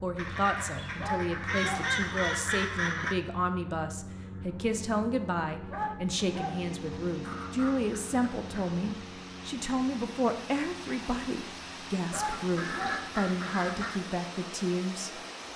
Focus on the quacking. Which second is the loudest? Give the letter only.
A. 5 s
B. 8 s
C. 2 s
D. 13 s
C.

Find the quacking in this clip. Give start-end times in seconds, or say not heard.
0.1-3.1, 7.2-8.8, 12.1-14.0.